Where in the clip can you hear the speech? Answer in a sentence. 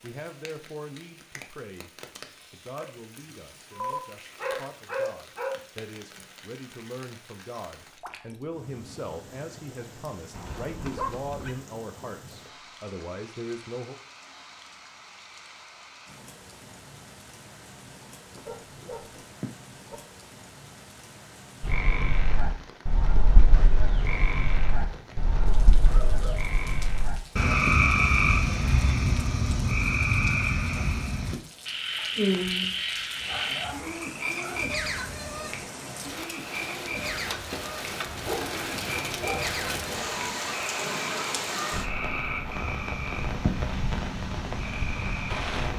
You can hear the speech from 0.0 to 1.9 s and from 2.5 to 13.9 s.